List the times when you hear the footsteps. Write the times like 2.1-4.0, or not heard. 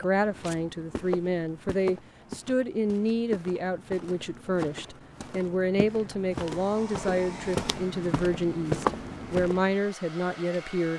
0.0-9.7.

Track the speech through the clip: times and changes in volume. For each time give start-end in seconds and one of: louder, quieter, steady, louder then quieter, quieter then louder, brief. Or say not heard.
0.0-10.9 steady.